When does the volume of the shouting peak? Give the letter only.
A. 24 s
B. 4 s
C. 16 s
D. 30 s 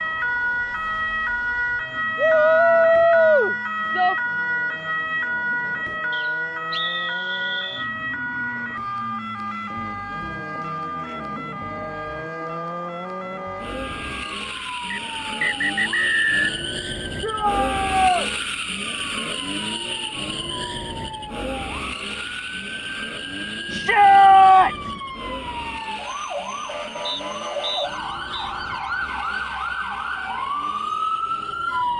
A.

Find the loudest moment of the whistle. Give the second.
16 s.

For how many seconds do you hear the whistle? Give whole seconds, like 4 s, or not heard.
5 s.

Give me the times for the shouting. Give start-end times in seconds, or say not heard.
2.1-4.2, 17.2-18.3, 23.6-24.9.